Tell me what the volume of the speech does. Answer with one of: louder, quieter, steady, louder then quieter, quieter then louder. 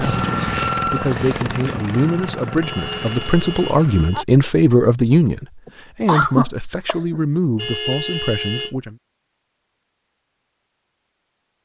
louder then quieter.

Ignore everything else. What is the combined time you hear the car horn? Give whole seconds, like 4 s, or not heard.
3 s.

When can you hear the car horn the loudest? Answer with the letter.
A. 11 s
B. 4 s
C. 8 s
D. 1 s
C.